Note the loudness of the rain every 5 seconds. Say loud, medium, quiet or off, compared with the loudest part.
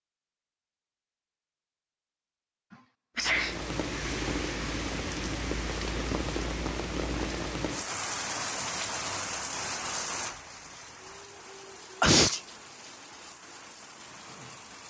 loud, loud, medium.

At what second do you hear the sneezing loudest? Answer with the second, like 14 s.
12 s.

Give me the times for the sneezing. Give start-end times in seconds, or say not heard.
2.7-3.6, 12.0-12.4.